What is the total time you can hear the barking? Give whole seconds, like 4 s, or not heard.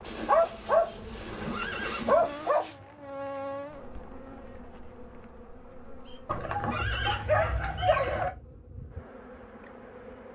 5 s.